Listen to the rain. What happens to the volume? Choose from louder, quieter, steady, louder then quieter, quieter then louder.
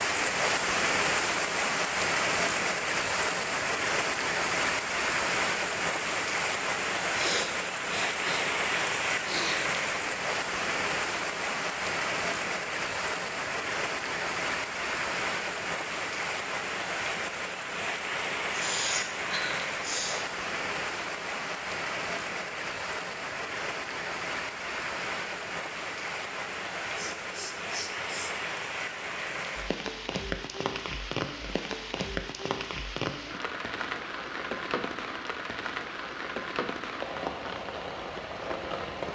quieter.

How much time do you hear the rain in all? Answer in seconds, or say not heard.
39 s.